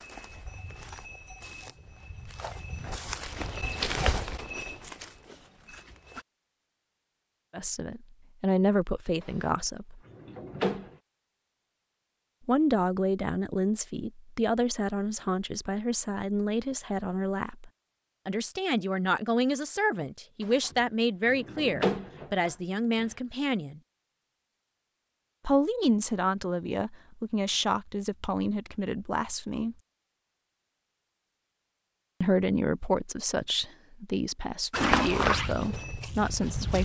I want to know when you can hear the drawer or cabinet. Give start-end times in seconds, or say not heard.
9.2-10.9, 20.4-23.1.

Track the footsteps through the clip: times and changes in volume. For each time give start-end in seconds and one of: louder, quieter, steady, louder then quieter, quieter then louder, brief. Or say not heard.
0.0-6.2 louder then quieter
34.7-36.8 brief.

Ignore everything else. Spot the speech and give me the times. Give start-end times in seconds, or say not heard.
7.5-10.0, 12.4-23.8, 25.4-29.8, 32.2-36.8.